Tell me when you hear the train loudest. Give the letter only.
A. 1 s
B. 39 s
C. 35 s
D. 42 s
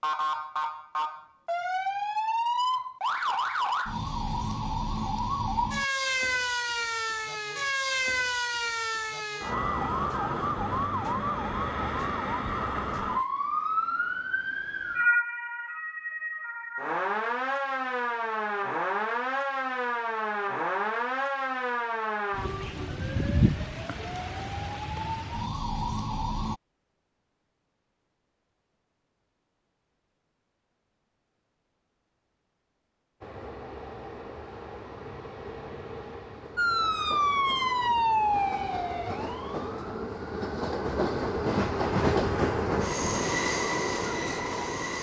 D.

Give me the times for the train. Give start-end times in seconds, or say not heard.
33.2-44.9.